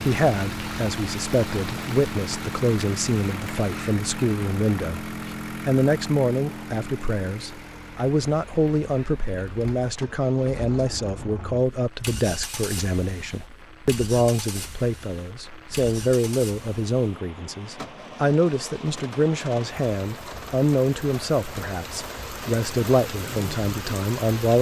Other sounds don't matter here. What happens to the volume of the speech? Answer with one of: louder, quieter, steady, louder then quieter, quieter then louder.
steady.